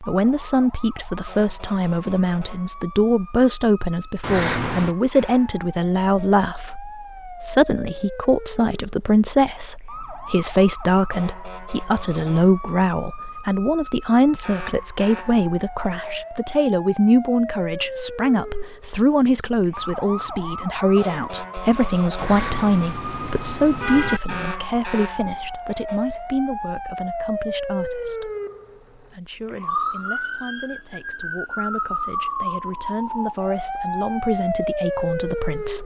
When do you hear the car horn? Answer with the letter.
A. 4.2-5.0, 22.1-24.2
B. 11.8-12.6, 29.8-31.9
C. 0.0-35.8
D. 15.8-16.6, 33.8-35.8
A.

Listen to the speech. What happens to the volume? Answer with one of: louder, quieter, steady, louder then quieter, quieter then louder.
quieter.